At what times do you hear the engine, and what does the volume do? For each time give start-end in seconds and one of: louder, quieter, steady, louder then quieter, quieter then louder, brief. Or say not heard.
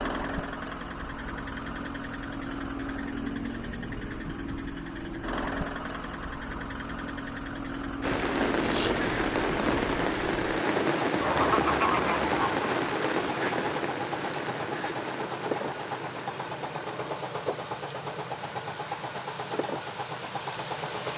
0.0-21.1 steady.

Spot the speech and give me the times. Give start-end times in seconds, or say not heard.
not heard.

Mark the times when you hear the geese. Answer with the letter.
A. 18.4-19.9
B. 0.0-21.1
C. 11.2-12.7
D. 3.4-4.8
C.